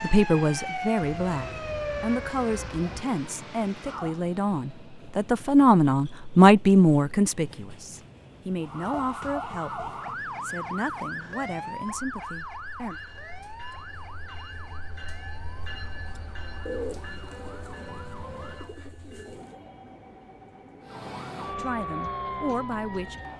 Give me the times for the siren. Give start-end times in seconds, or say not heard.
0.0-4.2, 8.6-18.8, 20.8-23.3.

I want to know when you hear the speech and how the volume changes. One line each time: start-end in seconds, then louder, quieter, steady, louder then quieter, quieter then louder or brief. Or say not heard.
0.0-12.9 louder then quieter
21.6-23.2 brief.